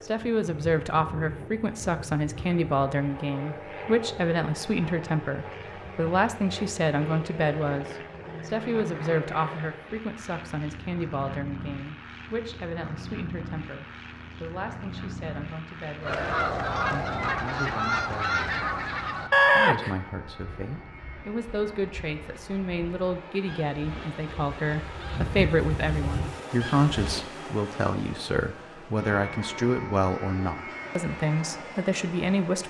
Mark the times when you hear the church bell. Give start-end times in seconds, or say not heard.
not heard.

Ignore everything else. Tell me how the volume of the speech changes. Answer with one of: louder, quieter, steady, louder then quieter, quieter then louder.
quieter then louder.